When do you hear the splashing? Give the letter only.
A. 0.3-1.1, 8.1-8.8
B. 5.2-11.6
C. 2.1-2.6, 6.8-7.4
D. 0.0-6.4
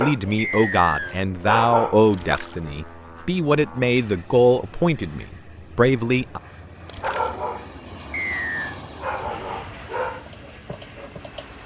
C.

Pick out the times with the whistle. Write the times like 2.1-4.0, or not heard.
0.3-1.1, 8.1-8.8.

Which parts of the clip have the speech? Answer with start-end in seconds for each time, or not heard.
0.0-6.4.